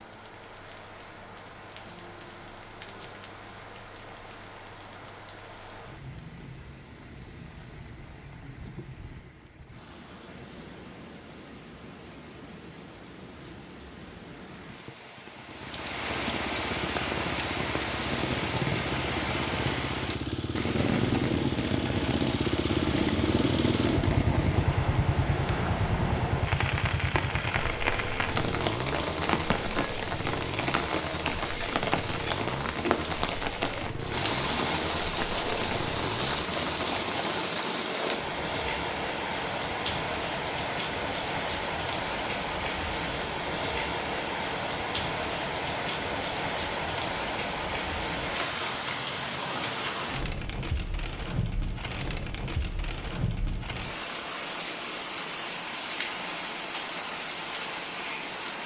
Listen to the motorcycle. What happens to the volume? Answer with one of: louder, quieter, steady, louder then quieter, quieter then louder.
louder then quieter.